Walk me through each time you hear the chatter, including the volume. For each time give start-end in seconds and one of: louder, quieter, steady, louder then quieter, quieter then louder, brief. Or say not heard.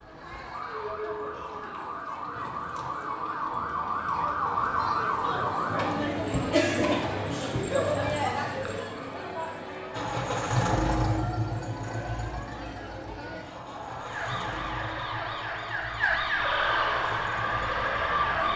0.0-18.5 louder then quieter.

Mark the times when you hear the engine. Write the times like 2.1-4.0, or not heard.
9.9-18.5.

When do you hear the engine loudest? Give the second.
11 s.